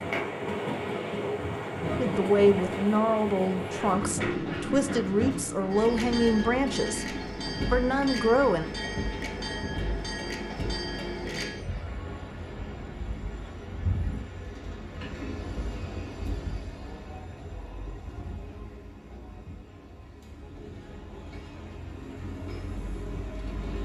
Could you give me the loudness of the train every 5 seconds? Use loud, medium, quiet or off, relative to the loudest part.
loud, loud, medium, medium, medium.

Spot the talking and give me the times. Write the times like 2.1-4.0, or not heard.
1.9-8.7.